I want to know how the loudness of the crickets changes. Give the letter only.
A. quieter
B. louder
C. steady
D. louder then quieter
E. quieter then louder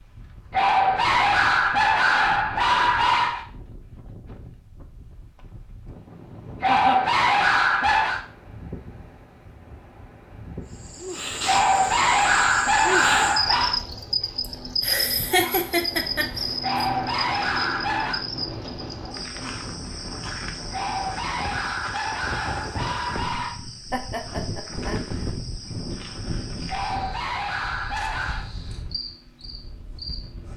A.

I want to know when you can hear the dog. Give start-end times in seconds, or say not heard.
0.5-3.5, 6.6-8.2, 11.4-13.8, 16.6-18.2, 20.7-23.6, 26.6-28.5.